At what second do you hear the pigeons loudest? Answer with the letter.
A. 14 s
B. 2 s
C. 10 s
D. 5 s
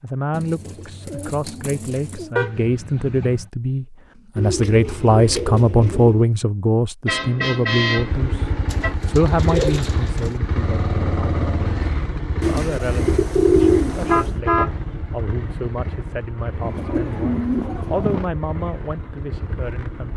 A.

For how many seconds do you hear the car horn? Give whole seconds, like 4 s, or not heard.
4 s.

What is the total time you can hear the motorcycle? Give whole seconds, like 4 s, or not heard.
12 s.